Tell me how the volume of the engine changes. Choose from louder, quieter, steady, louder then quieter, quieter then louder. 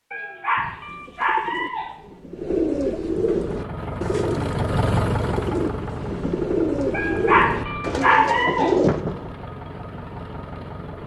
quieter.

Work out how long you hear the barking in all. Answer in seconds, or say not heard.
4 s.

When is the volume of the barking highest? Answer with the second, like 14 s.
8 s.